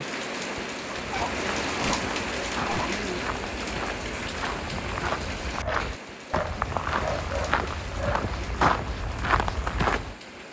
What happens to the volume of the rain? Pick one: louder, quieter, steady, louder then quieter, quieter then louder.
quieter.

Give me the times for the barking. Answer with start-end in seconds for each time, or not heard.
1.1-3.0, 5.6-8.3.